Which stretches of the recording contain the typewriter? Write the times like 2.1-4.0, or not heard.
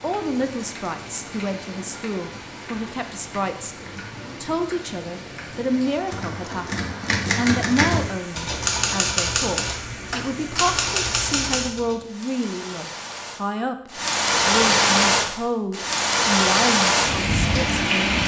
6.1-11.9.